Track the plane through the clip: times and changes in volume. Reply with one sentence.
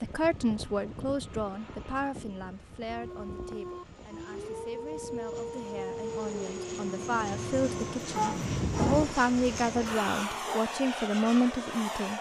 The plane can be heard from 0.0 to 12.1 s, getting quieter then louder.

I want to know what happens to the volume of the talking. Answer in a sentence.
The volume of the talking goes down, then up.